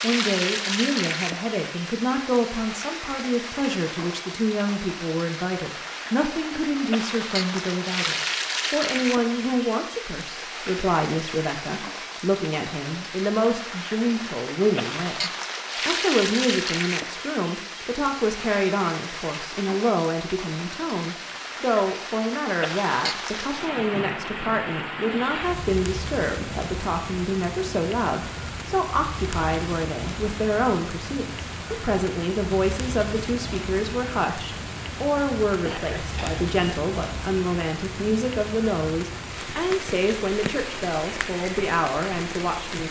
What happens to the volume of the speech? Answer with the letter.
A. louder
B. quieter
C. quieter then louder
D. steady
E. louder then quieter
D.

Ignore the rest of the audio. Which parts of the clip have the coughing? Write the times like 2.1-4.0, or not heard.
35.6-36.5.